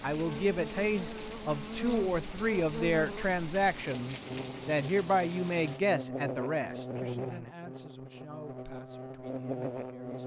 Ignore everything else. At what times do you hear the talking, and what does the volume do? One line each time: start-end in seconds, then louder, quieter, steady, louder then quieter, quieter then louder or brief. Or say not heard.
0.0-10.2 quieter.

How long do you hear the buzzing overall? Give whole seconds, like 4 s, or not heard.
10 s.